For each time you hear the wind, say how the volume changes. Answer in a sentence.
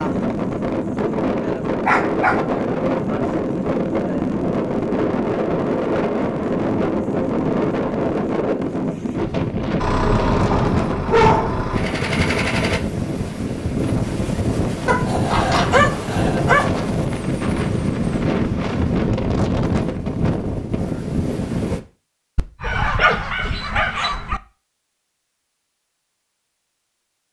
The wind can be heard from 0.0 to 21.8 s, at a steady volume.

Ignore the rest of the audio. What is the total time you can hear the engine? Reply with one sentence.
The engine can be heard for 3 seconds in total.